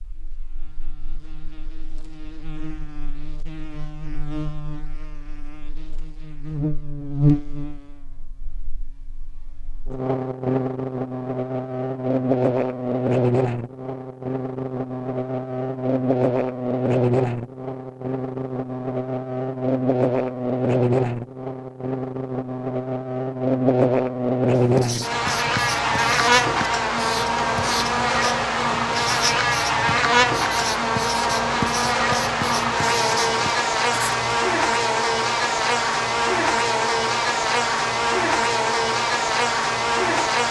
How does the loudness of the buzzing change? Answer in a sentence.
The loudness of the buzzing goes up.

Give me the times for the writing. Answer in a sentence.
The writing can be heard from 24.6 to 34.4 s.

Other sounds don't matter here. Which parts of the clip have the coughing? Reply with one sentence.
You can't hear the coughing here.